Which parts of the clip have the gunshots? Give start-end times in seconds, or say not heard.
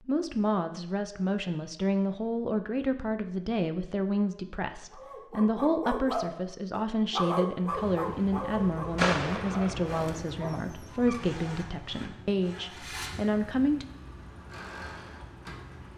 8.9-10.2.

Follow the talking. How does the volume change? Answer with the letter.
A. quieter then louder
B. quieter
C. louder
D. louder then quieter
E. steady
E.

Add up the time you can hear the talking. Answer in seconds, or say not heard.
14 s.